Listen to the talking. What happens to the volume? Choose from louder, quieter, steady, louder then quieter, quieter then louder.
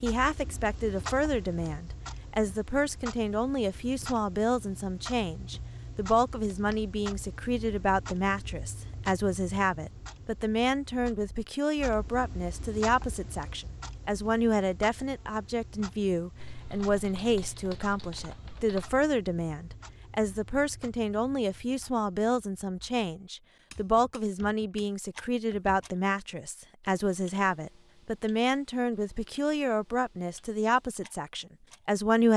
steady.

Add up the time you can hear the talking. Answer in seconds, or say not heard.
32 s.